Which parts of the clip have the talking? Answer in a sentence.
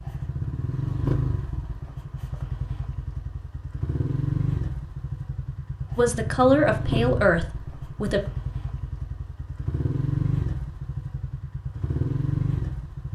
The talking can be heard from 6.0 to 8.2 s.